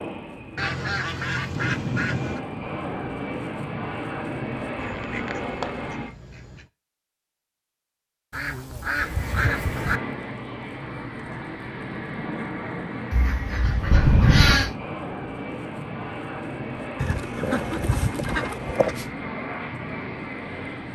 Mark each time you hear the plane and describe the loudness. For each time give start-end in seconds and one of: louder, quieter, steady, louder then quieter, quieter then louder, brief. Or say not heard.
0.0-6.2 louder
8.9-20.8 steady.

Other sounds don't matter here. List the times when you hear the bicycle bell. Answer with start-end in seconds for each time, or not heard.
13.9-14.7.